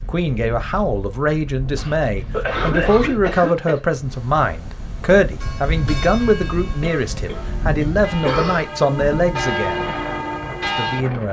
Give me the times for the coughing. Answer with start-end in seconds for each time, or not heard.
1.8-3.8, 6.8-8.7.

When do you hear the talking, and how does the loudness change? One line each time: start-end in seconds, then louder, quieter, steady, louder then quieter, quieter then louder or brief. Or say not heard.
0.0-9.9 steady
10.7-11.2 brief.